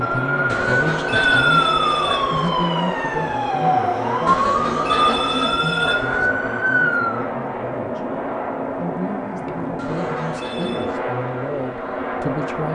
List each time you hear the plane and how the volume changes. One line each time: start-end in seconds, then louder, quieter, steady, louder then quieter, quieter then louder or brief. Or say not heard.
0.0-12.7 steady.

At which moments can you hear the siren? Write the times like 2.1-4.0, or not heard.
0.0-7.3.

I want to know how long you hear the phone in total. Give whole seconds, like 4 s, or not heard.
5 s.